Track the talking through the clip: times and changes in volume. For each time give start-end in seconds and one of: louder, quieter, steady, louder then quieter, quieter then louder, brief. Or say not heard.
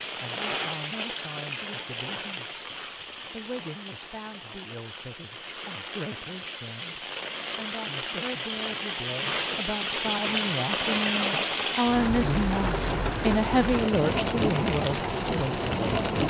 0.1-2.5 brief
3.3-15.9 louder.